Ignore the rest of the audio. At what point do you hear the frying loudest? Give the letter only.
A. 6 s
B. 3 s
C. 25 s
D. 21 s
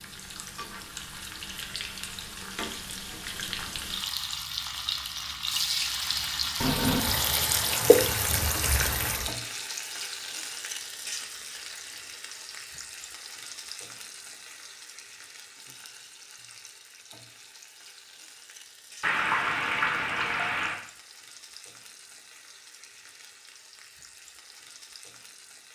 A.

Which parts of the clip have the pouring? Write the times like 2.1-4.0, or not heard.
6.6-9.3, 19.0-20.8.